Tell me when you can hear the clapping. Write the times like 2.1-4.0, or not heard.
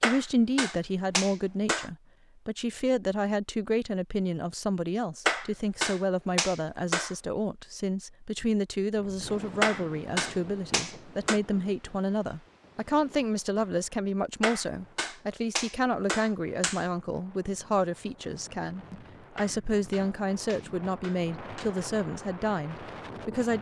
0.0-1.9, 5.2-7.2, 9.6-11.4, 14.4-16.9, 19.4-21.8.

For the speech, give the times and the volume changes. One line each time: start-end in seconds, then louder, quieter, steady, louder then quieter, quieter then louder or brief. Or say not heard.
0.0-23.5 steady.